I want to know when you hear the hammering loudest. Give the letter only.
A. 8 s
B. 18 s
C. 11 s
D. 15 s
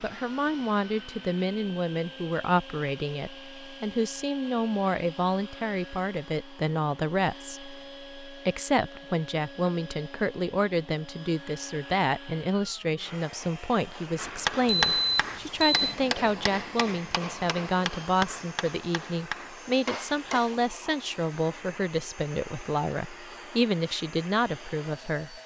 D.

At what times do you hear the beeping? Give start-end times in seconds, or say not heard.
14.7-15.9.